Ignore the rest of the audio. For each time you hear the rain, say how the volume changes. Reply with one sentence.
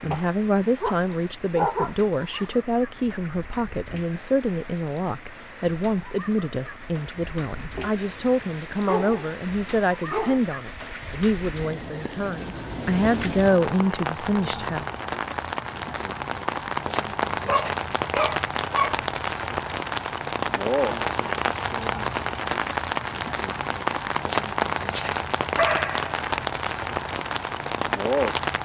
The rain can be heard from 0.0 to 28.6 s, getting louder.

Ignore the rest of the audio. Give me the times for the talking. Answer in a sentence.
The talking can be heard from 0.0 to 14.8 s.